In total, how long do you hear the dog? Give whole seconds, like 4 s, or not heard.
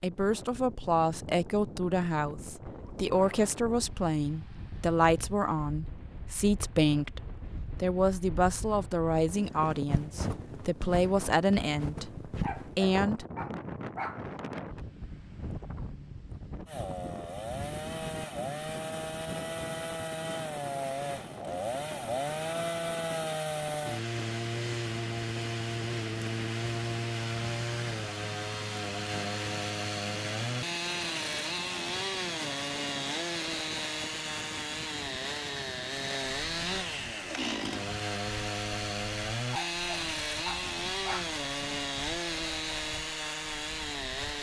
4 s.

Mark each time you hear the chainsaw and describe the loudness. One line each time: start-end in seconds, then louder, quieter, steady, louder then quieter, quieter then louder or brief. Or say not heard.
16.6-44.3 steady.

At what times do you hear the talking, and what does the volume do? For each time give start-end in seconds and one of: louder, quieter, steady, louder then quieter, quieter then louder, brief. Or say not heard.
0.0-13.2 steady.